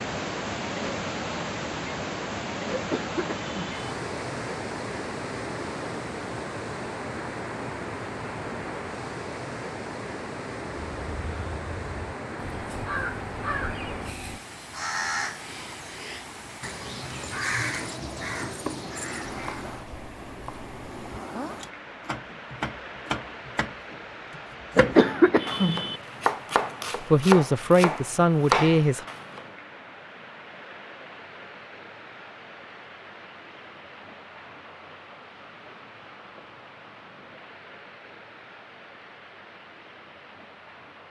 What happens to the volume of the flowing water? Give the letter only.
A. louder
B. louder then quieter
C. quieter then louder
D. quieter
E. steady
D.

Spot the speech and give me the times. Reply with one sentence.
You can hear the speech from 27.0 to 29.1 s.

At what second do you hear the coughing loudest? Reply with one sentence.
The loudest moment of the coughing is at 25 seconds.